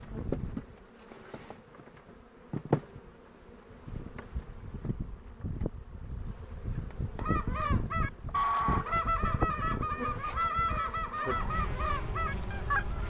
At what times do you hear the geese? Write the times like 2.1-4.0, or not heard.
7.2-13.0.